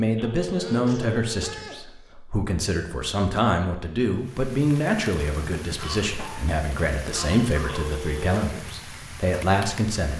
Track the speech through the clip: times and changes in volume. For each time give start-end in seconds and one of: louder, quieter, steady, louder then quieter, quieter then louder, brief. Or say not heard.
0.0-10.1 steady.